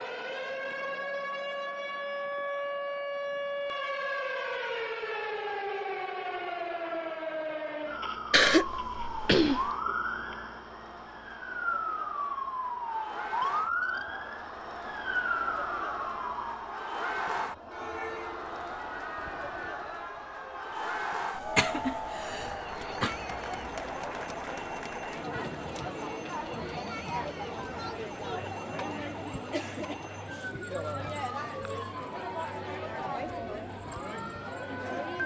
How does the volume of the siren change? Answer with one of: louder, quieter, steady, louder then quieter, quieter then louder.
quieter.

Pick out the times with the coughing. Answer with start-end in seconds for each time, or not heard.
8.3-9.7, 21.4-23.1.